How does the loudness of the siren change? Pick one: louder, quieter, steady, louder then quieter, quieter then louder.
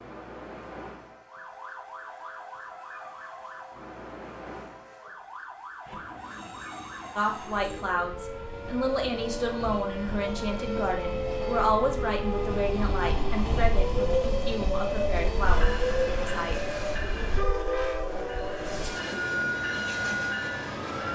louder.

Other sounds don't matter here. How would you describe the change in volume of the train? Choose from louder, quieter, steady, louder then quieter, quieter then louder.
louder.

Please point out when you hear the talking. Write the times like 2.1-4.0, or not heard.
7.2-16.6.